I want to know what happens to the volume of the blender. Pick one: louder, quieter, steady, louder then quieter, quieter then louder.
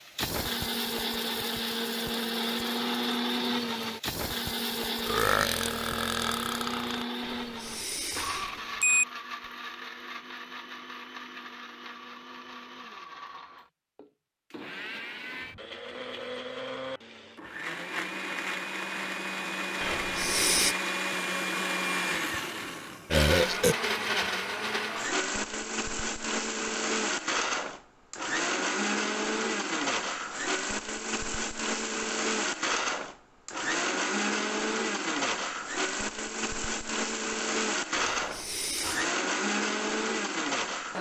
quieter then louder.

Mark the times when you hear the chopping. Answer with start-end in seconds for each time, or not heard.
not heard.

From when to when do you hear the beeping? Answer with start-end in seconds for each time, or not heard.
7.2-9.1, 19.8-20.8, 38.0-39.1.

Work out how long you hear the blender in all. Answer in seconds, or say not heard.
41 s.